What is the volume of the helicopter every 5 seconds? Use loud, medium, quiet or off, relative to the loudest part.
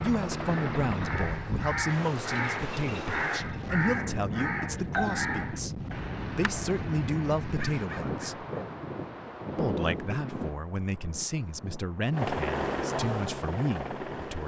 loud, off, loud.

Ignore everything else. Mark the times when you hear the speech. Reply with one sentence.
You can hear the speech from 0.0 to 8.4 s and from 9.6 to 14.4 s.